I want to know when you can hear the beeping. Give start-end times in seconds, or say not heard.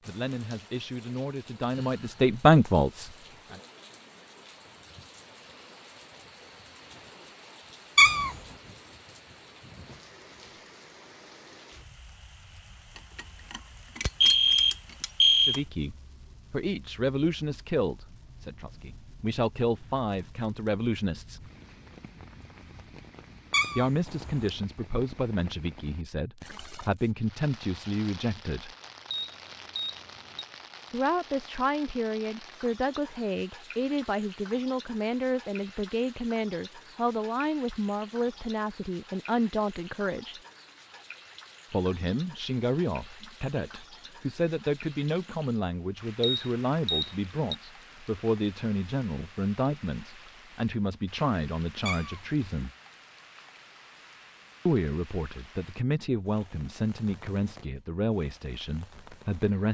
12.9-15.6, 29.1-30.4, 46.2-47.5.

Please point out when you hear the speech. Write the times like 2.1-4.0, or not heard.
0.1-3.6, 15.4-21.4, 23.8-28.7, 30.9-40.4, 41.7-52.7, 54.6-59.6.